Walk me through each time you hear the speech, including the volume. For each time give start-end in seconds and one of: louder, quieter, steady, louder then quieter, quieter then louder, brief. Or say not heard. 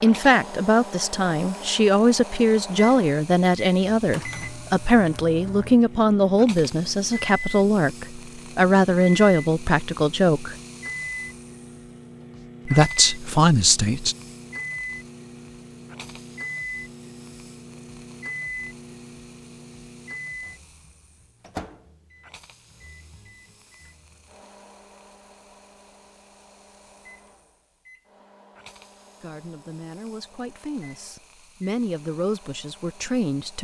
0.0-10.6 steady
12.7-14.2 brief
29.2-33.5 louder then quieter.